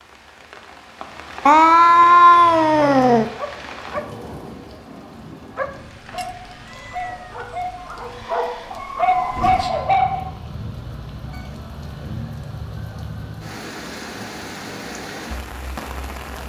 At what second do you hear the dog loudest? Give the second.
10 s.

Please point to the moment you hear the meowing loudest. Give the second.
2 s.